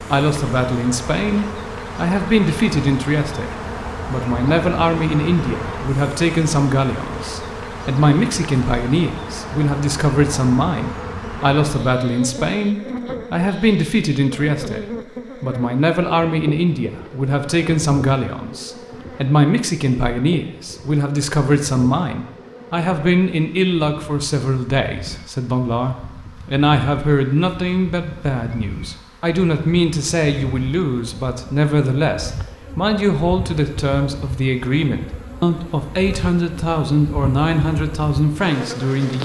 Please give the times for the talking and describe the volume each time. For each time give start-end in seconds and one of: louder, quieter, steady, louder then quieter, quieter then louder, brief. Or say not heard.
0.0-39.2 steady.